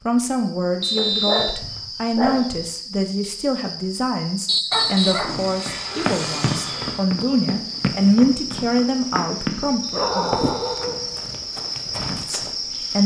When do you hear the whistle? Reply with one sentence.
You can hear the whistle from 0.8 to 1.6 s, from 4.5 to 5.3 s and from 9.8 to 10.8 s.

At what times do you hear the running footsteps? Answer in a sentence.
You can hear the running footsteps from 5.2 to 12.6 s.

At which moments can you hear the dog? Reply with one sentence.
You can hear the dog from 0.9 to 2.6 s, from 4.7 to 7.0 s and from 9.9 to 11.4 s.